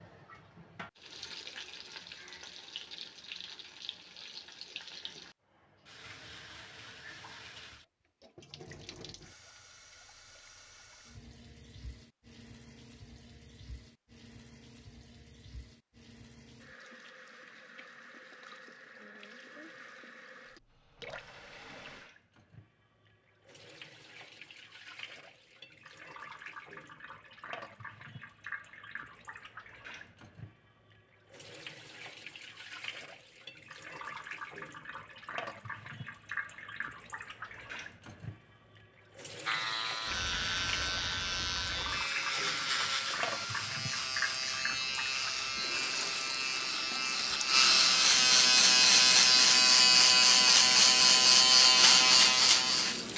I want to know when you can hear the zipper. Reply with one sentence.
The zipper can't be heard in this clip.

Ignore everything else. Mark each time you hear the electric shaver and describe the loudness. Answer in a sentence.
You can hear the electric shaver from 39.5 to 53.1 s, getting louder.